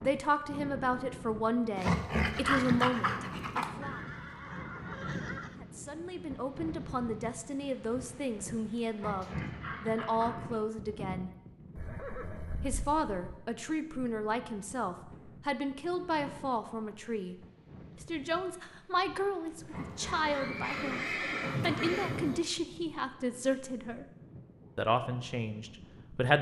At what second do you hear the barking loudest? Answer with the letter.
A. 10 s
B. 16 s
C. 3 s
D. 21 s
C.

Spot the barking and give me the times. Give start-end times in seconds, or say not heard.
1.8-3.7, 8.9-10.6, 19.6-21.9.